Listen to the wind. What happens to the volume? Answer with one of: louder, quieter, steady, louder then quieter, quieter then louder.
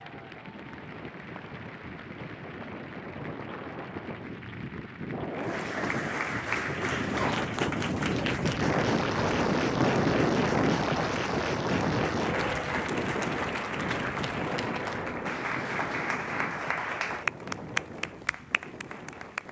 louder then quieter.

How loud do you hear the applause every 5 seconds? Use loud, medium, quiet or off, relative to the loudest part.
quiet, loud, loud, loud.